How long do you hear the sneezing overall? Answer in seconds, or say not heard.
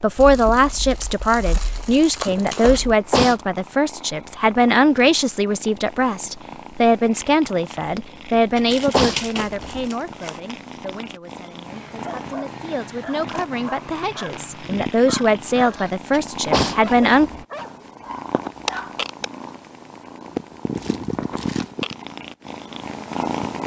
3 s.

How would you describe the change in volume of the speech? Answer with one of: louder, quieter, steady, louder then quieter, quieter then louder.
quieter then louder.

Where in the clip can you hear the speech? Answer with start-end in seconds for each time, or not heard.
0.0-17.3.